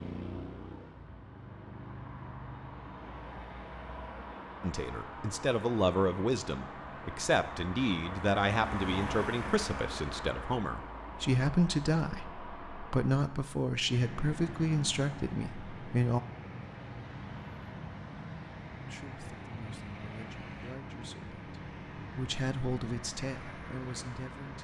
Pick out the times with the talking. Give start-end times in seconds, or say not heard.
4.6-16.2, 18.9-24.6.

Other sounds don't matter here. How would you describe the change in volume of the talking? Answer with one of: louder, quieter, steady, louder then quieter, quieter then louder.
quieter.